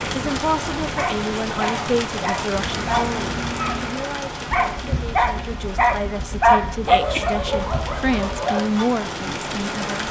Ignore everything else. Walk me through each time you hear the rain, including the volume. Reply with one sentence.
The rain can be heard from 0.0 to 10.0 s, getting quieter then louder.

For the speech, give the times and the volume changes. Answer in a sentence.
The speech can be heard from 0.1 to 10.0 s, getting quieter then louder.